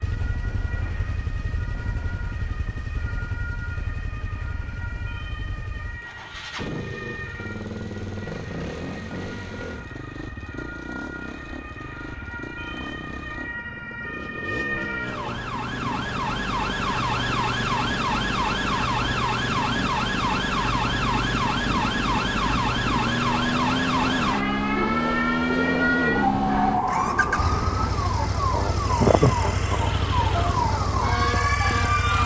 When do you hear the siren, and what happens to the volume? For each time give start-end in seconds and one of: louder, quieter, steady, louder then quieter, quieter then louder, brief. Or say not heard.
0.0-32.2 louder.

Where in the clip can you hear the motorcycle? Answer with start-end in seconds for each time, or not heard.
0.0-32.2.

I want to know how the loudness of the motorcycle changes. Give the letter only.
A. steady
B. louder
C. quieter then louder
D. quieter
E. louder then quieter
B.